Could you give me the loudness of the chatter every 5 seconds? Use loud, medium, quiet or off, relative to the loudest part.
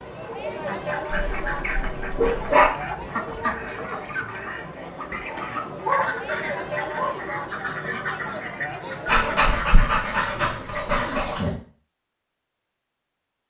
loud, loud, off.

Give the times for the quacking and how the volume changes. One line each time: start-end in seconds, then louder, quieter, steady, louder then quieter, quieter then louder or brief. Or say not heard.
0.5-11.3 steady.